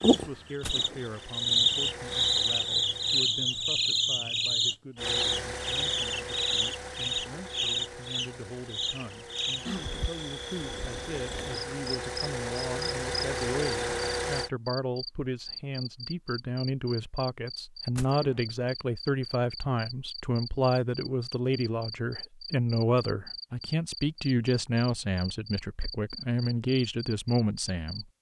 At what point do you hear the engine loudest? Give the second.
14 s.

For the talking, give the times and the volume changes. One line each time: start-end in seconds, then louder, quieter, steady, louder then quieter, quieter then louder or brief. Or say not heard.
0.1-28.1 louder.